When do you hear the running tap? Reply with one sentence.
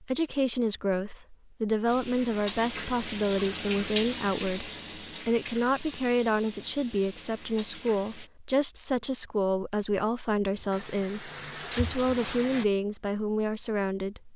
You can hear the running tap from 1.9 to 8.3 s and from 10.6 to 12.7 s.